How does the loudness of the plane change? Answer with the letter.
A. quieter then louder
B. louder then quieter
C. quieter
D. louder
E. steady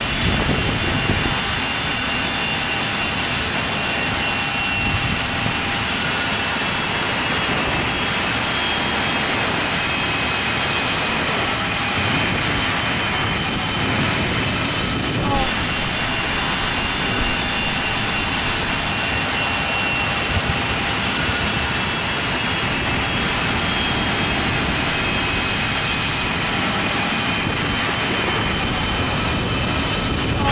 E.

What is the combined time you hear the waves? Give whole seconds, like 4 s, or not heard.
30 s.